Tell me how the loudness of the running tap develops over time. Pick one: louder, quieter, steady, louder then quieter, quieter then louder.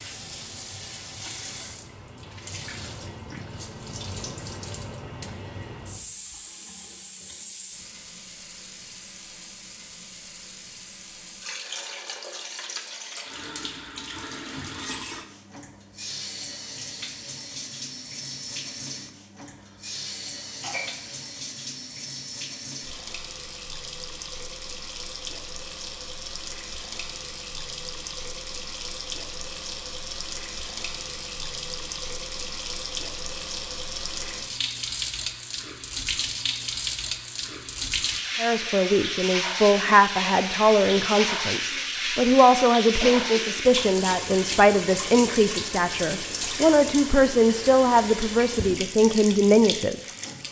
louder.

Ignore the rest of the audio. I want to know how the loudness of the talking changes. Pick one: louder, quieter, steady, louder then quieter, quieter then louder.
steady.